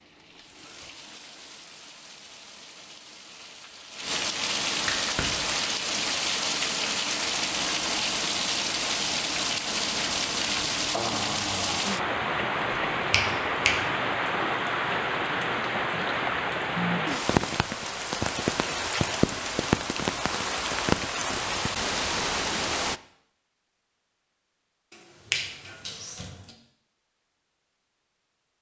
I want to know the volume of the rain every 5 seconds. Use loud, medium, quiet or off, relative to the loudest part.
medium, loud, loud, loud, loud, off.